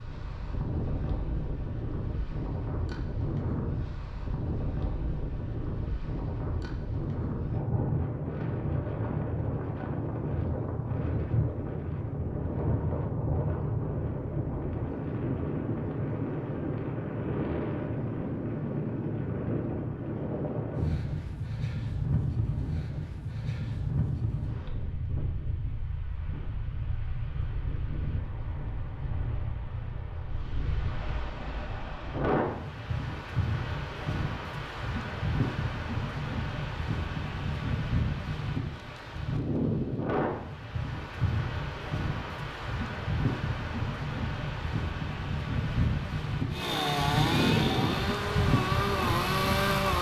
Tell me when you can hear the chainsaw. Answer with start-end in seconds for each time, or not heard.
46.5-49.9.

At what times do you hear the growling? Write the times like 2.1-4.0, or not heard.
not heard.